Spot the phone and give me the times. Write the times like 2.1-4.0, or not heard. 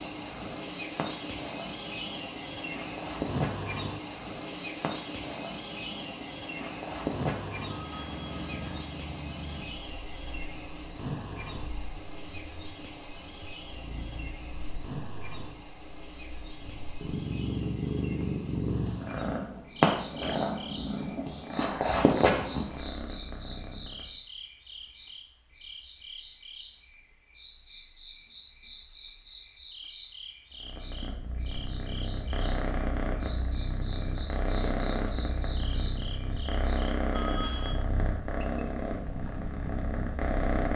7.7-8.8, 37.1-37.8.